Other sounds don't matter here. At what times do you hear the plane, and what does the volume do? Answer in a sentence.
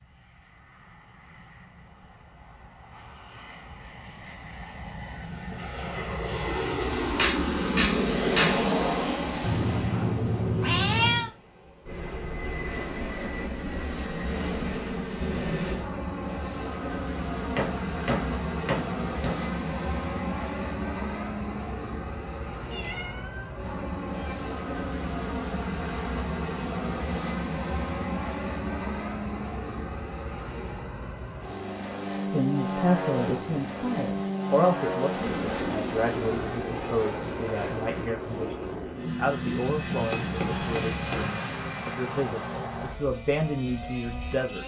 The plane can be heard from 0.0 to 44.6 s, at a steady volume.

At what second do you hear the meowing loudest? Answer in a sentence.
The loudest moment of the meowing is at 11 seconds.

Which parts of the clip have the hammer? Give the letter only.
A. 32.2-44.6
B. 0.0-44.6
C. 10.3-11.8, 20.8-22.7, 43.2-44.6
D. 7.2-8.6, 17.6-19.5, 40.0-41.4
D.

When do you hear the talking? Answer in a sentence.
You can hear the talking from 32.2 to 44.6 s.